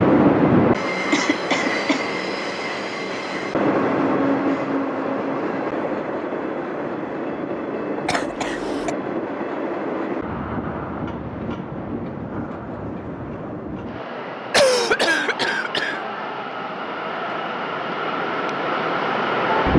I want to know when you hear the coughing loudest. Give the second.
15 s.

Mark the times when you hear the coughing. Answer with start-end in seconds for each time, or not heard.
1.1-2.0, 8.1-8.9, 14.5-16.0.